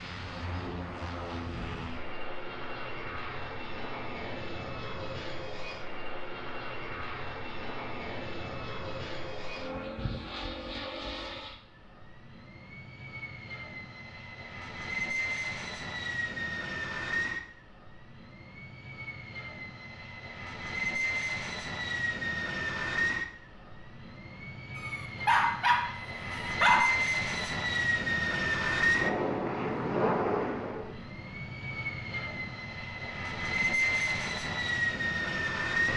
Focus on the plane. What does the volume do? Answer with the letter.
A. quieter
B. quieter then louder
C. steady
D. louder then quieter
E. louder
E.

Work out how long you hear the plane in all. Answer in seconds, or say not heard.
36 s.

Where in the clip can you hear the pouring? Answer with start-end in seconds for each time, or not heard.
not heard.